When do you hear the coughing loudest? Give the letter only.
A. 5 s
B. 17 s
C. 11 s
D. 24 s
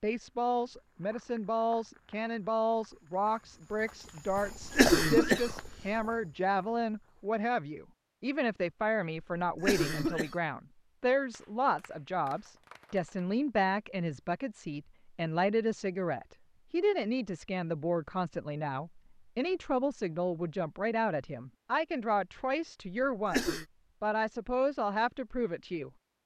A.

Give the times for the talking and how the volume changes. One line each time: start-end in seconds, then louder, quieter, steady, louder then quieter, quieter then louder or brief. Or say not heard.
0.0-25.9 steady.